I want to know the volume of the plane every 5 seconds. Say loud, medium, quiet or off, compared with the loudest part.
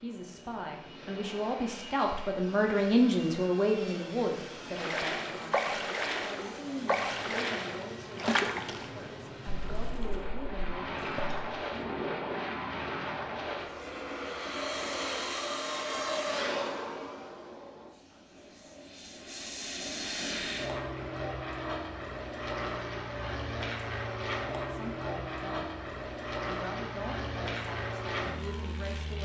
medium, medium, loud, loud, loud, loud.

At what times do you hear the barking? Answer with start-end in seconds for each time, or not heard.
not heard.